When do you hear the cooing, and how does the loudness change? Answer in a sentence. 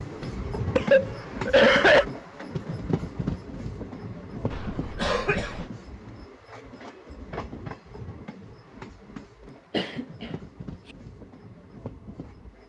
The cooing can't be heard in this clip.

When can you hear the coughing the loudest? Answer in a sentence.
The loudest moment of the coughing is at 2 seconds.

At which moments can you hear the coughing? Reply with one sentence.
You can hear the coughing from 0.8 to 2.0 s, from 4.5 to 5.7 s and from 9.7 to 10.4 s.